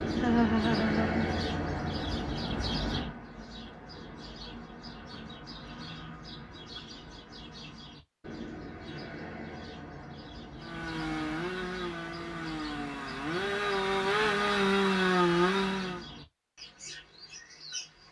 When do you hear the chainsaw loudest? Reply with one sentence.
The volume of the chainsaw peaks at 15 seconds.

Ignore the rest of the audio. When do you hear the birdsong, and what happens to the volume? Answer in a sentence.
The birdsong can be heard from 0.0 to 18.0 s, getting quieter.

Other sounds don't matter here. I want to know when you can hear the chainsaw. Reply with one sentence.
The chainsaw can be heard from 10.6 to 16.1 s.